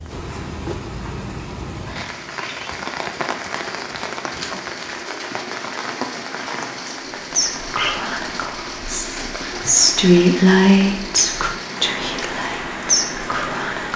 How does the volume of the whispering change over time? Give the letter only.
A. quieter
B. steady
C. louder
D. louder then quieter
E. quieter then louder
D.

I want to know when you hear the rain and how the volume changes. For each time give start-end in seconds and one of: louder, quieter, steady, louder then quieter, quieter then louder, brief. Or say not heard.
0.0-13.9 steady.